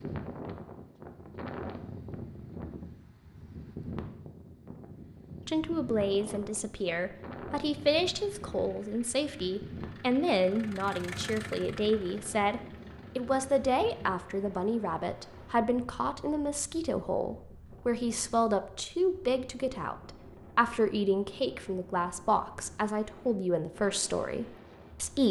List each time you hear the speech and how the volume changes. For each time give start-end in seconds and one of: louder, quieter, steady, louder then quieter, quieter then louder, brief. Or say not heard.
5.5-25.2 steady.